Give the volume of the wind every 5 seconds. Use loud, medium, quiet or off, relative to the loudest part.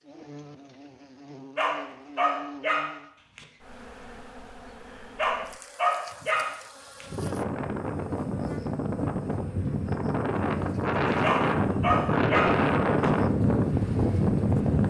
off, medium, loud.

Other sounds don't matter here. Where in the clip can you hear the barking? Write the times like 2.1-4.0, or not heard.
1.6-3.5, 5.2-7.0, 11.2-13.1.